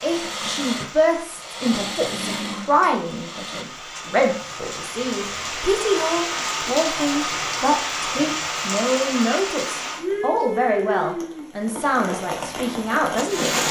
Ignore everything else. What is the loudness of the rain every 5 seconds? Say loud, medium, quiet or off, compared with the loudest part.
medium, loud, loud.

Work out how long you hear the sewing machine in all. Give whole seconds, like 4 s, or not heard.
4 s.